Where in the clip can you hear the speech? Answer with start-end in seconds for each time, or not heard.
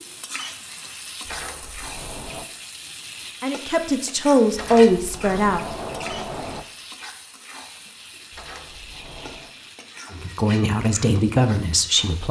3.4-5.7, 10.1-12.2.